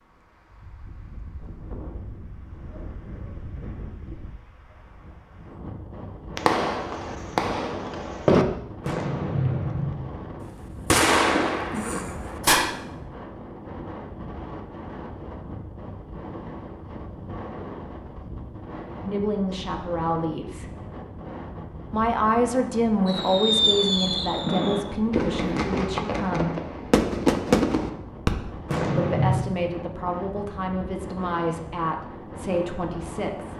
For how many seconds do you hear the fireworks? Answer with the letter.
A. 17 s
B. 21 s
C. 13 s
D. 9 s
C.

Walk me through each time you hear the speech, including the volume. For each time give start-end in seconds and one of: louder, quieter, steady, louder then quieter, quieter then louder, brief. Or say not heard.
18.9-20.7 brief
21.9-26.6 quieter
28.9-33.5 steady.